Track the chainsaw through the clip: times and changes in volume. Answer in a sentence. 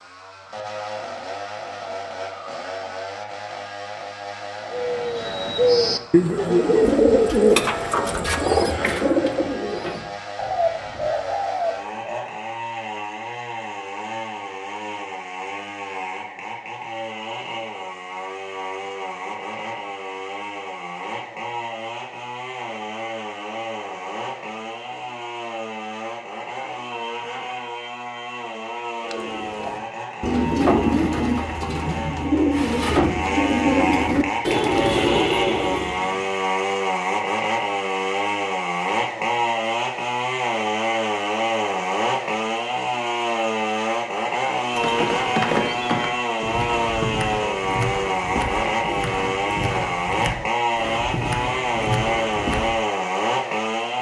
The chainsaw can be heard from 0.0 to 53.9 s, getting louder.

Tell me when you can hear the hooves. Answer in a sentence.
The hooves can be heard from 44.7 to 52.7 s.